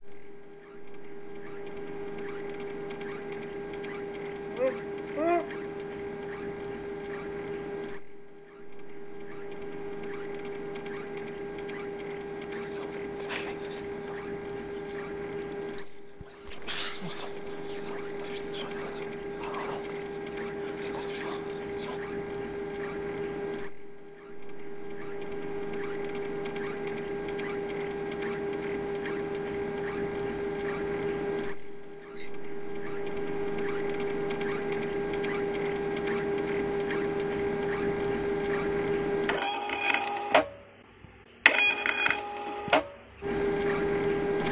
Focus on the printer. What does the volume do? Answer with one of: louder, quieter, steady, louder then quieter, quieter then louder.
louder.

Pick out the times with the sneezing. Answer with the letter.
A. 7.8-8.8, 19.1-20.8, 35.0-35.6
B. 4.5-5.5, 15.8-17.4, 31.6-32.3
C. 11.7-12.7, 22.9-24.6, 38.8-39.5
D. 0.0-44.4
B.